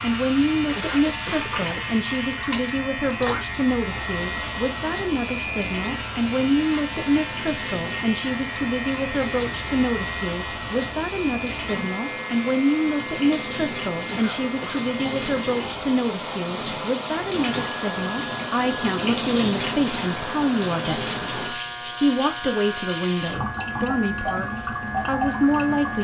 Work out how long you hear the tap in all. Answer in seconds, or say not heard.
26 s.